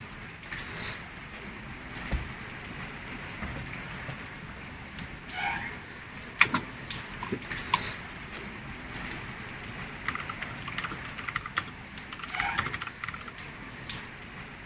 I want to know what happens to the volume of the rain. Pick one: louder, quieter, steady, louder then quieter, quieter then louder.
steady.